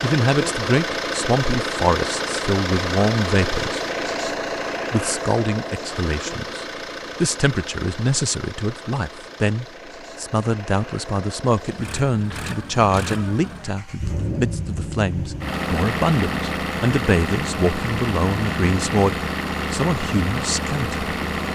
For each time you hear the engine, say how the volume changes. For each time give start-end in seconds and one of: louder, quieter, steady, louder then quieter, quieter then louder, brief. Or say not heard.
0.0-21.4 quieter then louder.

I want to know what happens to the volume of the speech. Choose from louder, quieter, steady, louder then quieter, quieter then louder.
steady.